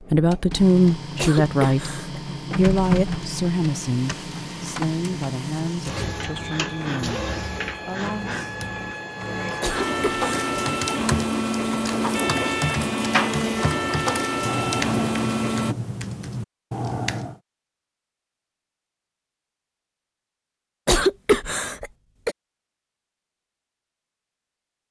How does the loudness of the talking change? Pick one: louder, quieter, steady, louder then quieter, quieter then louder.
quieter.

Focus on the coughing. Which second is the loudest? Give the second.
21 s.